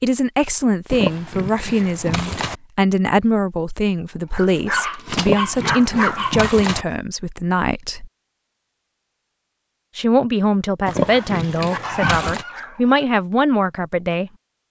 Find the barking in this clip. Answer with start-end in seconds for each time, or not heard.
4.3-6.7, 11.1-13.1.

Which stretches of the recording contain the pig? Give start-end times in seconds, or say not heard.
0.9-2.6, 5.2-6.8, 10.8-12.4.